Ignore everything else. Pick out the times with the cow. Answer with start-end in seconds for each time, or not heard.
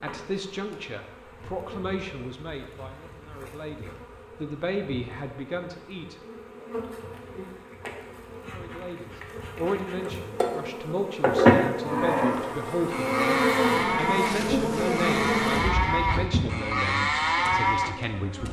11.8-17.9.